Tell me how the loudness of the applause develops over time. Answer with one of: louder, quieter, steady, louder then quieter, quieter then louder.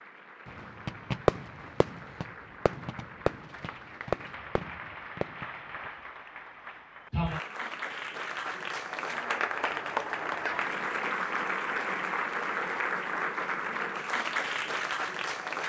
louder.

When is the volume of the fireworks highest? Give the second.
1 s.